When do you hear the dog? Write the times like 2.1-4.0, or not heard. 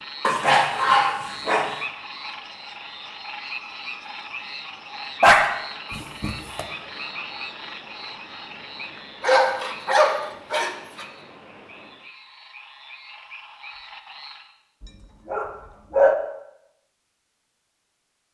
0.2-1.8, 5.2-6.7, 9.2-11.1, 14.8-16.1.